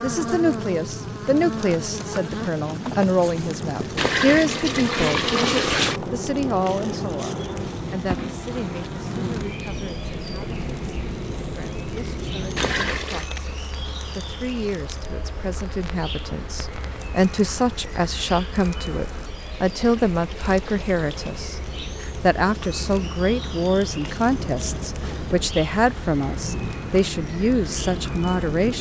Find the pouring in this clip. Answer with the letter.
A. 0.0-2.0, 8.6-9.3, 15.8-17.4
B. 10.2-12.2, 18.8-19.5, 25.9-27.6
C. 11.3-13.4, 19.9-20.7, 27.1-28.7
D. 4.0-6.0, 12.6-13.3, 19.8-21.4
D.